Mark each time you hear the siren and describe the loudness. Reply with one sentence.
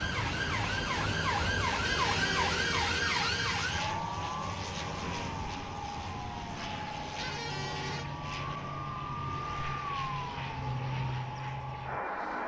You can hear the siren from 0.0 to 12.4 s, getting quieter.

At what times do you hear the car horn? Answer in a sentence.
You can hear the car horn from 1.8 to 3.7 s and from 7.2 to 8.1 s.